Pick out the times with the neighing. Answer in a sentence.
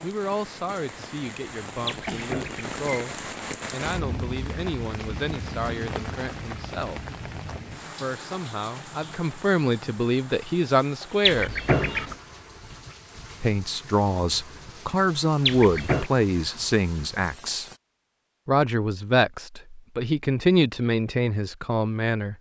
You can hear the neighing from 1.9 to 2.8 s, from 11.2 to 12.2 s and from 15.4 to 16.1 s.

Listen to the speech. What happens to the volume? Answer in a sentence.
The loudness of the speech goes up.